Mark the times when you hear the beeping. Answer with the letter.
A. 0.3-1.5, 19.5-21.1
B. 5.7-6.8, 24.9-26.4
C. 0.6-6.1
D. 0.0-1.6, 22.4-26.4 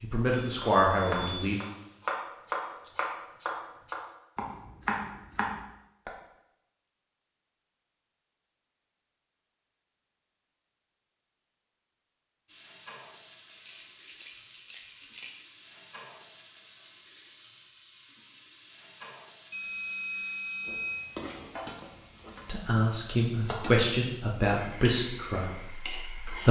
A.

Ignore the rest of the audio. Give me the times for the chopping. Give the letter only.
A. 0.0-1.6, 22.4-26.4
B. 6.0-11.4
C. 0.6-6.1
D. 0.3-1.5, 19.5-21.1
C.